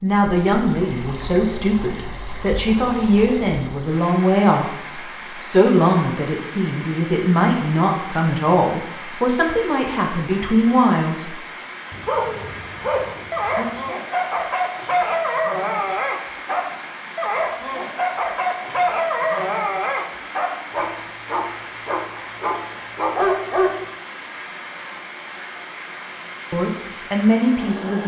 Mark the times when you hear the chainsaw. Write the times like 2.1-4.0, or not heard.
not heard.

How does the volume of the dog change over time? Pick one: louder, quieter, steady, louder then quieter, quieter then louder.
steady.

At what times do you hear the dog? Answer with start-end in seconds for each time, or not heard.
12.1-23.8.